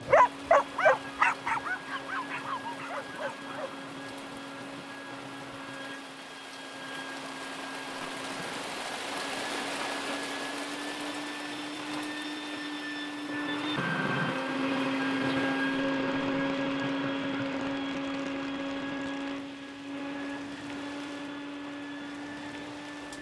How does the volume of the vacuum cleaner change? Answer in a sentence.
The volume of the vacuum cleaner goes up, then down.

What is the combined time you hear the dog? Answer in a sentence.
You can hear the dog for 4 seconds altogether.